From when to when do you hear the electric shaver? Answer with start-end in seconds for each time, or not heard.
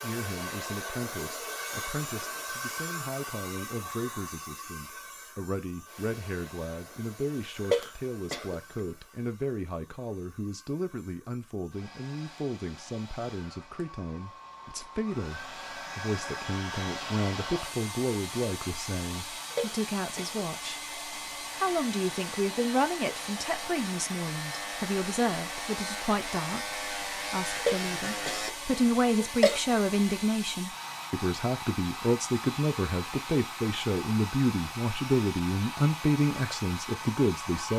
21.5-28.6.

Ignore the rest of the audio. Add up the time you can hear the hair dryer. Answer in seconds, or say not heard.
38 s.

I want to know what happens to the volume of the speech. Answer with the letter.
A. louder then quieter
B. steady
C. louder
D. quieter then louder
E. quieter
C.